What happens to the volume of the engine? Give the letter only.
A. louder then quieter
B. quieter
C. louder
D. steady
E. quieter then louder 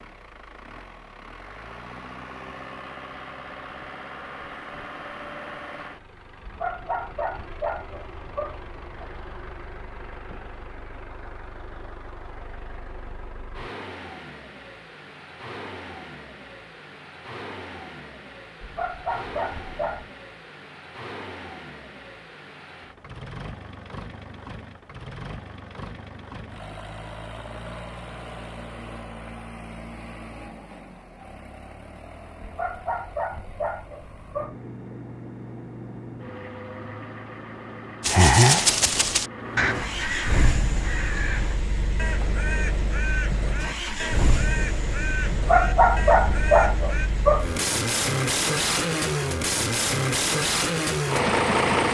C.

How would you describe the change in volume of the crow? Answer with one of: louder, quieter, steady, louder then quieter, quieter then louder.
quieter.